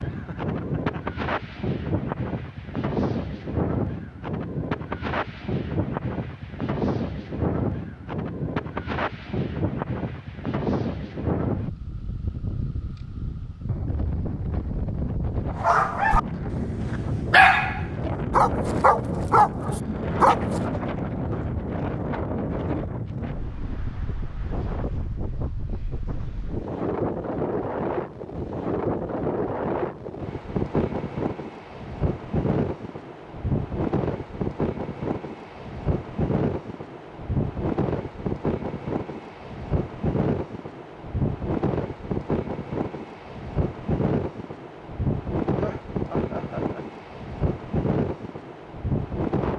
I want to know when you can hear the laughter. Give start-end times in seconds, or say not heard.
0.1-1.0, 45.5-46.9.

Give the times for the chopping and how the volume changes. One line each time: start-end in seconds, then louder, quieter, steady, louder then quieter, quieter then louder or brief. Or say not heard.
not heard.